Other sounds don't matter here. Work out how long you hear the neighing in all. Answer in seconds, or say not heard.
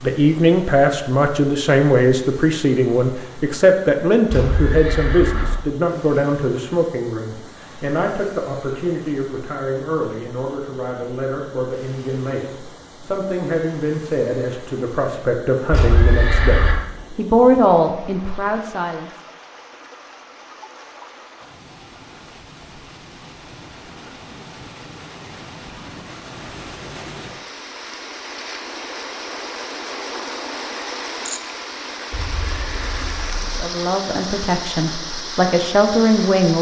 4 s.